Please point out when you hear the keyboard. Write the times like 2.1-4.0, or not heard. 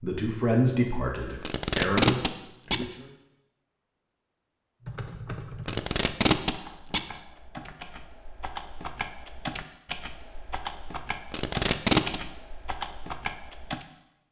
4.8-13.8.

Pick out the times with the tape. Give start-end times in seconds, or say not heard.
1.4-2.9, 5.7-7.0, 11.3-12.2.